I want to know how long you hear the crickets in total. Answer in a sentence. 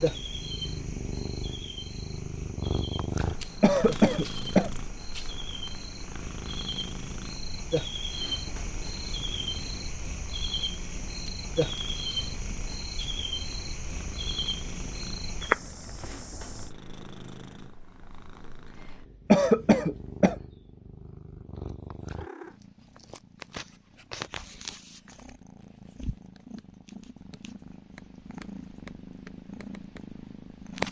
You can hear the crickets for 17 seconds altogether.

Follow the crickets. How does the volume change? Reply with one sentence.
The loudness of the crickets goes up.